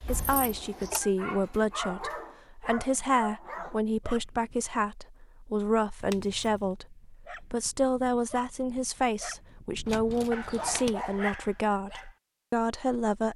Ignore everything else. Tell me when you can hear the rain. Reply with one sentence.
You can't hear the rain here.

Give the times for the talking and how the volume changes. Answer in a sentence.
You can hear the talking from 0.0 to 13.3 s, at a steady volume.